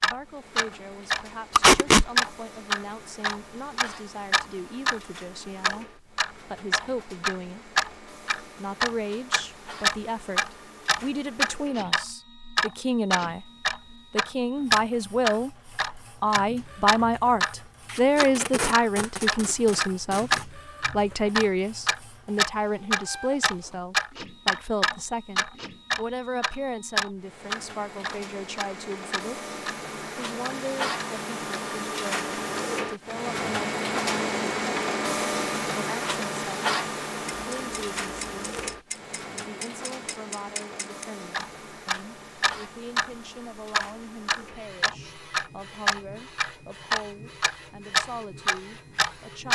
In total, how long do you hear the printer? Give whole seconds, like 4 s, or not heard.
49 s.